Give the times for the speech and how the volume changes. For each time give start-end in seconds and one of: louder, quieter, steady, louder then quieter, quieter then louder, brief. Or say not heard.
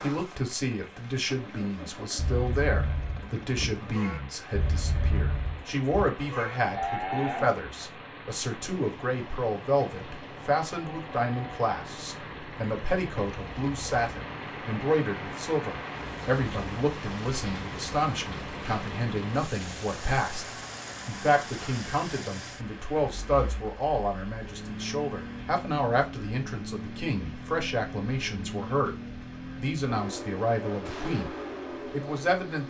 0.0-32.6 steady.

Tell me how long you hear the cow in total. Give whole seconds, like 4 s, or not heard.
5 s.